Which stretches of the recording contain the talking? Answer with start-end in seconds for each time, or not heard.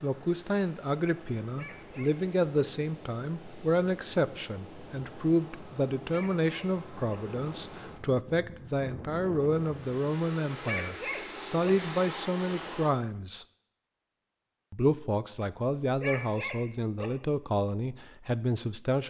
0.0-13.4, 14.7-19.0.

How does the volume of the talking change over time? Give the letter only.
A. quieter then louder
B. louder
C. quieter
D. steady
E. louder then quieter
D.